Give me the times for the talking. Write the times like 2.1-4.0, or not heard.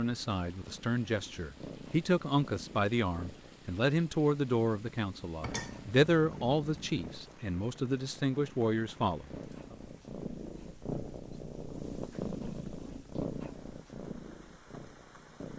0.0-9.8.